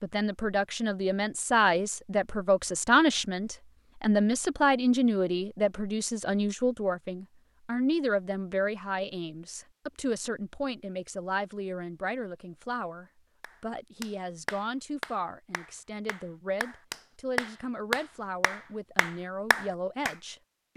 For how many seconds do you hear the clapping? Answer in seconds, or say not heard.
7 s.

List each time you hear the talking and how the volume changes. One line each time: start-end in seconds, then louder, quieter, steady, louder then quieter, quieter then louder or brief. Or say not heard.
0.0-20.7 quieter.